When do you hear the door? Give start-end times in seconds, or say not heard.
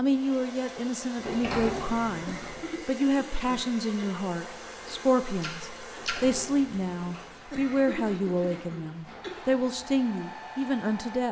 1.1-2.7, 5.9-7.3.